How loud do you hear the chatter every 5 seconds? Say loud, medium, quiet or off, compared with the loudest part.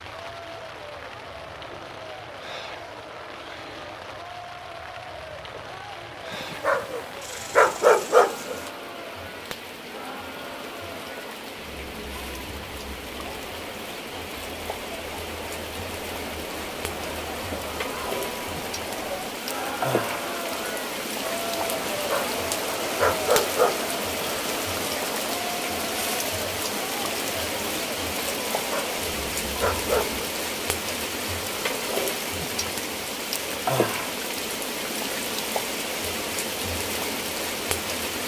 medium, medium, medium, loud, loud, loud, off, off.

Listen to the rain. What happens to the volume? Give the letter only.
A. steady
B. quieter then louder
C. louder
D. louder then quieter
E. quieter
C.